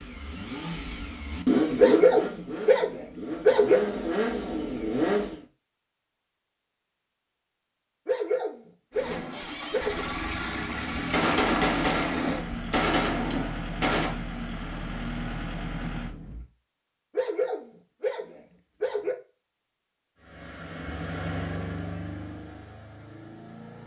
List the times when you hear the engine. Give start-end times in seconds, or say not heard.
0.0-5.5, 8.9-16.4, 20.1-23.8.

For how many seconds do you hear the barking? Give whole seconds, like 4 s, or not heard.
6 s.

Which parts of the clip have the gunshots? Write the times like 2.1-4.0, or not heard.
10.9-14.2.